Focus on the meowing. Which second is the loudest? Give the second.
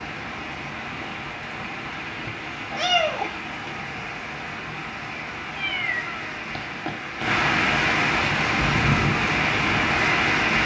3 s.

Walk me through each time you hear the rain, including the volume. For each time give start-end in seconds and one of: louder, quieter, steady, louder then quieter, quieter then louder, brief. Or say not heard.
0.0-10.6 louder.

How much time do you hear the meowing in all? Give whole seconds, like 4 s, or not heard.
3 s.